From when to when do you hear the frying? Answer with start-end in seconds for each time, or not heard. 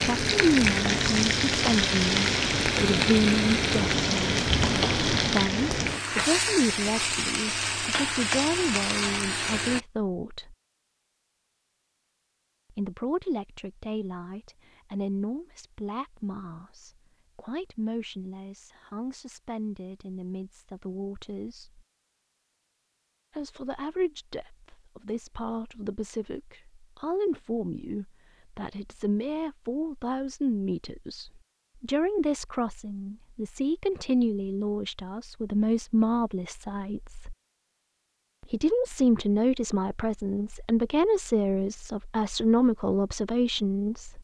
0.0-9.8.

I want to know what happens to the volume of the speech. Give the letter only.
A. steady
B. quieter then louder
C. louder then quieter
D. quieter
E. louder
B.